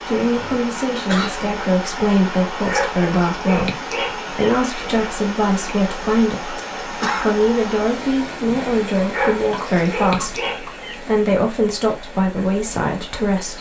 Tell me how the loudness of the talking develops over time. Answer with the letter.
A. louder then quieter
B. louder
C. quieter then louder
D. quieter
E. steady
E.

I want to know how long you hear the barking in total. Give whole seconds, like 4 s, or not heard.
4 s.